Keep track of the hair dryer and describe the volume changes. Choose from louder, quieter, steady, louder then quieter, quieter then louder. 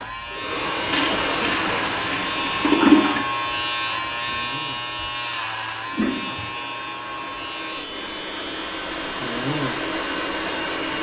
quieter then louder.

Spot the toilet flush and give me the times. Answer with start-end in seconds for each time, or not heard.
0.8-3.2, 5.8-6.5.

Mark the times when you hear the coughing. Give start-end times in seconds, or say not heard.
1.1-1.9.